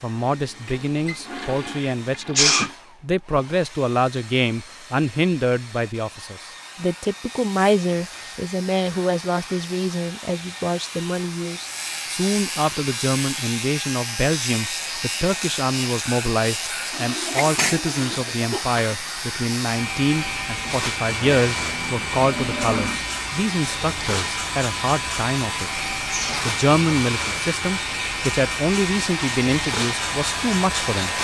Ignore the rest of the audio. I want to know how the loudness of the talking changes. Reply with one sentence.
The volume of the talking stays about the same.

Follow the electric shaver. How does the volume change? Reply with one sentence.
The volume of the electric shaver goes up.